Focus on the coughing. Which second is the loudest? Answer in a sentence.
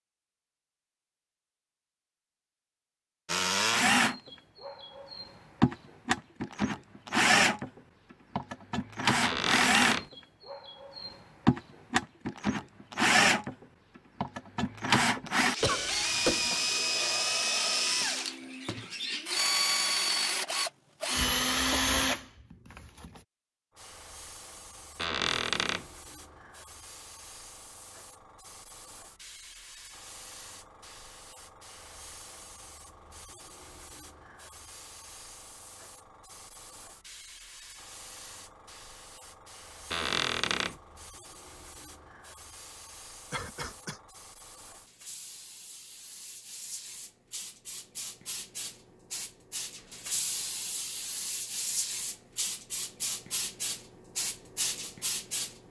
The loudest moment of the coughing is at 16 seconds.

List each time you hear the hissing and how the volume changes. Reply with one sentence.
You can hear the hissing from 23.7 to 55.6 s, getting louder.